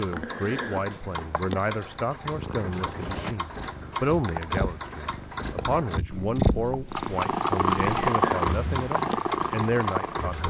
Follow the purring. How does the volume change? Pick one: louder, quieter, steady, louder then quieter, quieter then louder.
louder.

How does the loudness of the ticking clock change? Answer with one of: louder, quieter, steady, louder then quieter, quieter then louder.
steady.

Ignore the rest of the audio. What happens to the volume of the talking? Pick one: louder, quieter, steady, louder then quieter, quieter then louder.
steady.